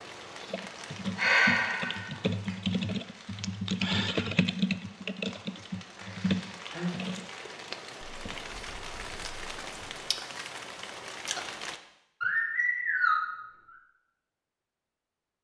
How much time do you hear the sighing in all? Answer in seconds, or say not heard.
3 s.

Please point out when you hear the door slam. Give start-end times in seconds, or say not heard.
not heard.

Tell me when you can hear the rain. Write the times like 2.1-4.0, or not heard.
0.0-11.8.